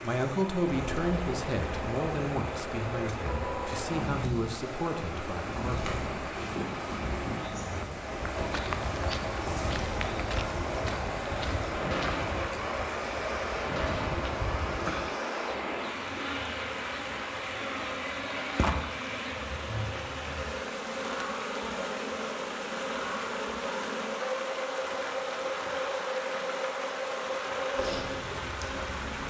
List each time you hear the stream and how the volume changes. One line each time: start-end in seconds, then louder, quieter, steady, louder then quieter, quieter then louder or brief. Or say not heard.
0.0-29.2 steady.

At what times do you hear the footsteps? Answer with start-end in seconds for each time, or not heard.
7.5-15.1.